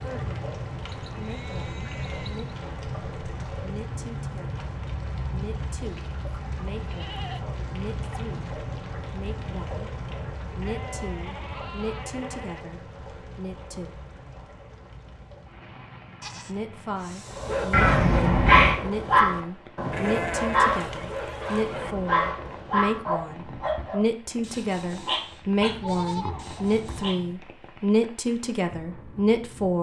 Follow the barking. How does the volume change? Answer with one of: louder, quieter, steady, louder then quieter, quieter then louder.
quieter.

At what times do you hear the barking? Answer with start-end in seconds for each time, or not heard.
17.3-27.2.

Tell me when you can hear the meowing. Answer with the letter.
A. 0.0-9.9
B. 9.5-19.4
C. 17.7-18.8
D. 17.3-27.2
C.